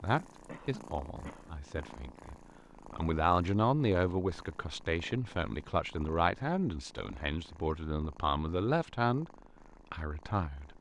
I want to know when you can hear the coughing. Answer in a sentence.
The coughing can be heard from 0.5 to 1.9 s.